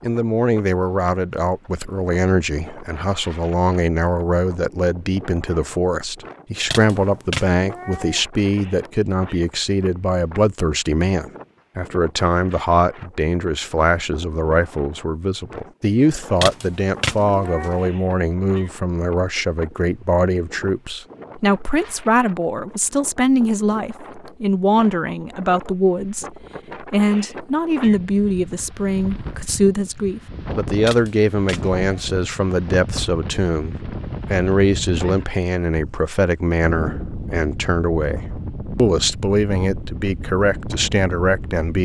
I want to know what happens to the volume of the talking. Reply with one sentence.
The loudness of the talking stays about the same.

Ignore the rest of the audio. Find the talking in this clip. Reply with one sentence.
You can hear the talking from 0.0 to 41.8 s.